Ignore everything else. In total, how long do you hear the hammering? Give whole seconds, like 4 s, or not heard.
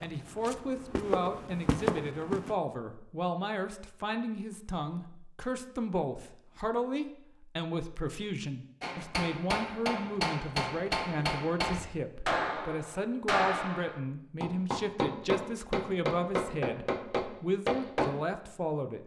9 s.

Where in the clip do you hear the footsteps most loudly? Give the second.
2 s.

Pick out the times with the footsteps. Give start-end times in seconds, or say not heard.
0.0-2.5.